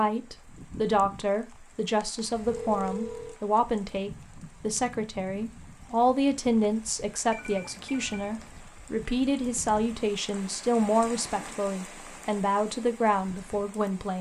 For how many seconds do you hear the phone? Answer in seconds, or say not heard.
2 s.